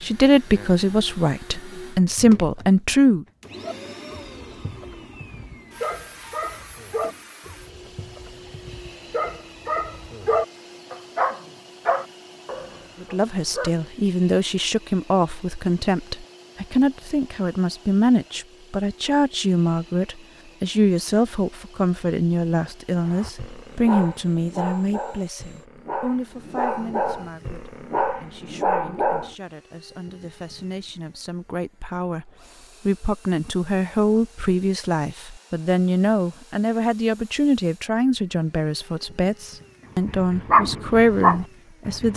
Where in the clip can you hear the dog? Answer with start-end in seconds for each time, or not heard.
3.6-13.8, 23.1-29.3, 40.0-42.1.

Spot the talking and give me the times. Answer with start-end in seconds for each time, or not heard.
0.0-3.2, 13.0-42.1.